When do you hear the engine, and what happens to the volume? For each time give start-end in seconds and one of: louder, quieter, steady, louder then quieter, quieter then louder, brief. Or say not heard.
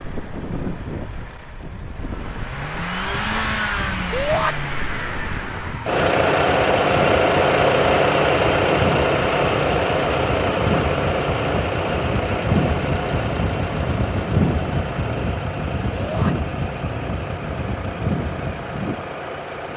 0.0-19.7 louder then quieter.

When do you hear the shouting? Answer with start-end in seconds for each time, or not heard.
4.1-4.5, 9.8-10.2, 15.9-16.4.